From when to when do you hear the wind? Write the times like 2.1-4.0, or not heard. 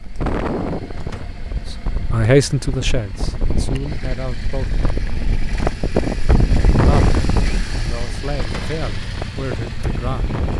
0.0-10.5.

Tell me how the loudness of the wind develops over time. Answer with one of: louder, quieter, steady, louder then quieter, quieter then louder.
louder then quieter.